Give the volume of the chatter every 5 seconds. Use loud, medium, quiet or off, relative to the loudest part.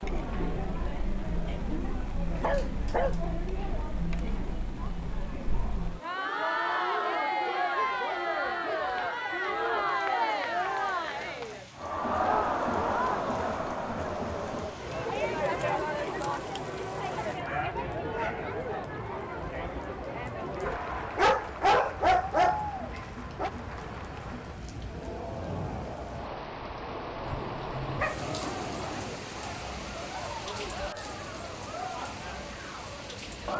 medium, loud, loud, loud, medium, medium, medium.